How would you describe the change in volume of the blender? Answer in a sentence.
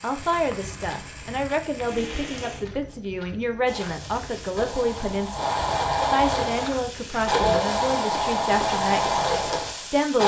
The loudness of the blender goes up.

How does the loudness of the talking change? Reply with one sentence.
The volume of the talking stays about the same.